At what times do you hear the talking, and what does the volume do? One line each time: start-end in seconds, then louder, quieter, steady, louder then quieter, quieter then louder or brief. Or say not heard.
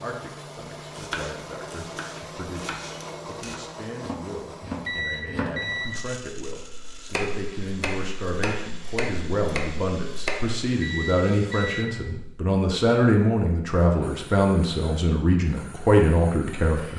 0.0-16.9 louder.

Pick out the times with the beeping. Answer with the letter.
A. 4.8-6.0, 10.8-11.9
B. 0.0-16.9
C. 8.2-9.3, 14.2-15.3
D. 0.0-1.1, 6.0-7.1
A.